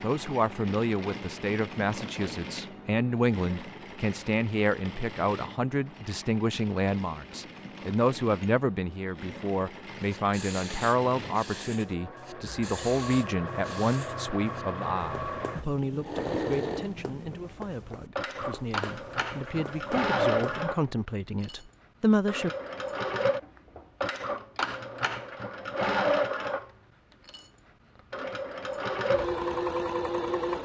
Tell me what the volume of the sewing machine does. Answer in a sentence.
The volume of the sewing machine goes up.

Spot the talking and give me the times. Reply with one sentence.
The talking can be heard from 0.0 to 22.5 s.